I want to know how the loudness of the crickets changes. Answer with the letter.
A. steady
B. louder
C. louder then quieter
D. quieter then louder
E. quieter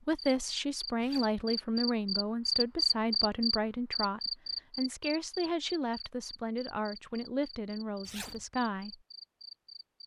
C.